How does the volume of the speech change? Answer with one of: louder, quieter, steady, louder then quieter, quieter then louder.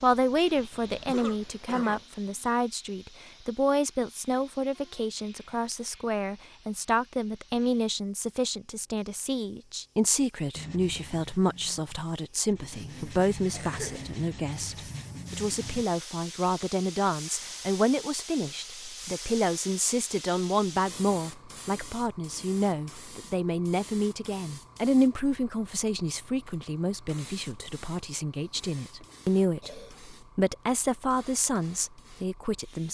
steady.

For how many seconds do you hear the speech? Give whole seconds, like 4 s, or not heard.
33 s.